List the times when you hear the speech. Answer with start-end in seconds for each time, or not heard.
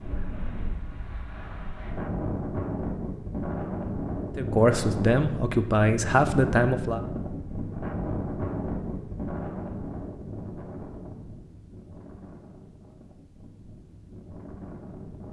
4.3-7.0.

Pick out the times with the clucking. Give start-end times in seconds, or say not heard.
not heard.